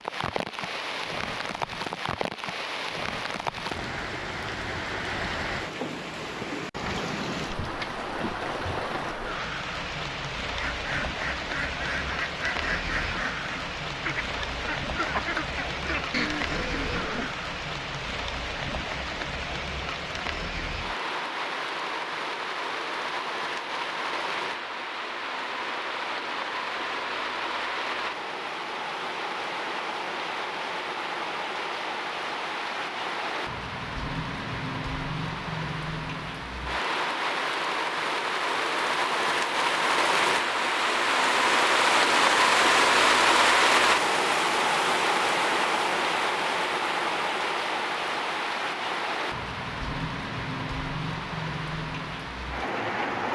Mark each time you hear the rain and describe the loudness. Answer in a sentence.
You can hear the rain from 0.0 to 53.3 s, getting louder.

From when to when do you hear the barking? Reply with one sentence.
You can't hear the barking here.